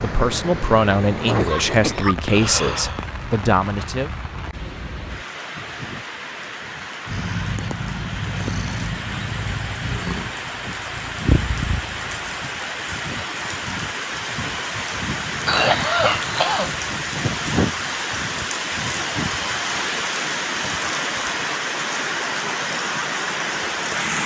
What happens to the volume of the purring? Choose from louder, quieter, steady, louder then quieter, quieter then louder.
quieter then louder.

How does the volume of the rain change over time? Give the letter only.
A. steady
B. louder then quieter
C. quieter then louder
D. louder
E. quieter
D.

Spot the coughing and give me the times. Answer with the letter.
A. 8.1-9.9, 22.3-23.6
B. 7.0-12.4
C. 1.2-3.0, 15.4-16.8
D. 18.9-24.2
C.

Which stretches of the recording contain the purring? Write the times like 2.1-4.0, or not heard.
7.0-12.4.